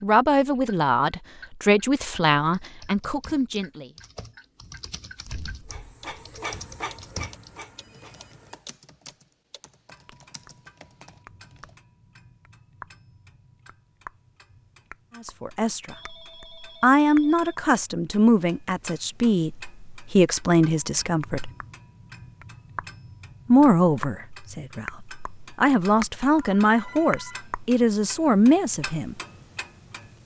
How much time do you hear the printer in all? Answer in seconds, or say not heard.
3 s.